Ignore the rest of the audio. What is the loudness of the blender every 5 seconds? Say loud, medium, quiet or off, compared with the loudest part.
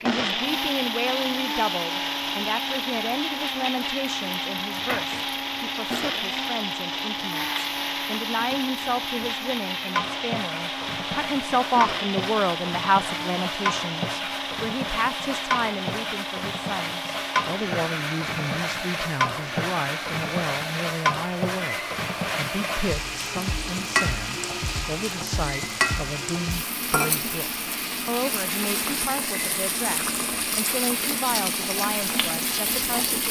loud, loud, loud, medium, medium, medium, medium.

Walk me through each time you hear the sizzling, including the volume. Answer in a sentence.
The sizzling can be heard from 0.0 to 33.2 s, getting louder.